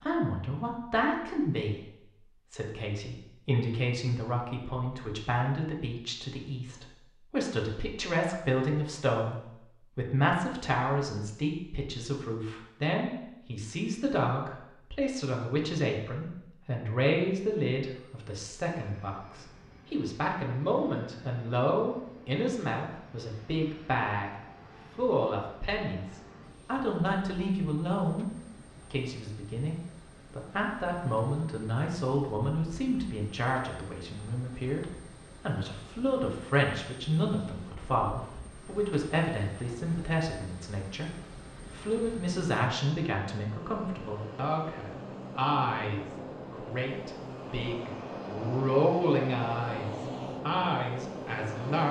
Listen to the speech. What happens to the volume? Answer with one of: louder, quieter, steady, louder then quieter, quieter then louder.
steady.